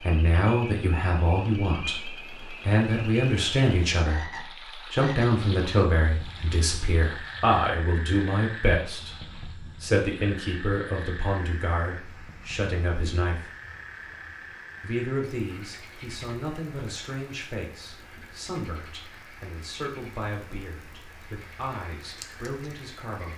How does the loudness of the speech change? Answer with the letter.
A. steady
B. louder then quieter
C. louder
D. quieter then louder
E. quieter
E.